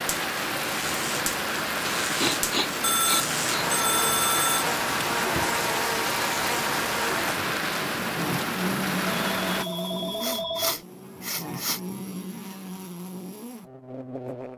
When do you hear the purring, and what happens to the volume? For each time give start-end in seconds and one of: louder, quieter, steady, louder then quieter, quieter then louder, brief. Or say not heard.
not heard.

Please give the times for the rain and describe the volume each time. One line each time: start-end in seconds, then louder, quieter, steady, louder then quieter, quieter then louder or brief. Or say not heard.
0.0-9.7 steady.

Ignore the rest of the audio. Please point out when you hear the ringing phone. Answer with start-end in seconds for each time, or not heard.
2.8-4.7, 9.1-10.8.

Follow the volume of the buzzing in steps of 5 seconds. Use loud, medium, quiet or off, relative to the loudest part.
loud, loud, medium.